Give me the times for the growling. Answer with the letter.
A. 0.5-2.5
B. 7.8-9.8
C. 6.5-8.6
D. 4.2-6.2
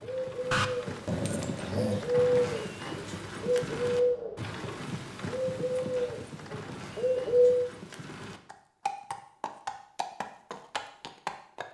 A.